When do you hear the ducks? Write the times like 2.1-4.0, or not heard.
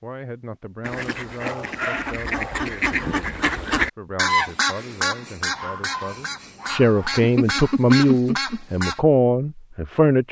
0.8-9.0.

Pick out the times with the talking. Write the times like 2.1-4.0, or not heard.
0.0-10.2.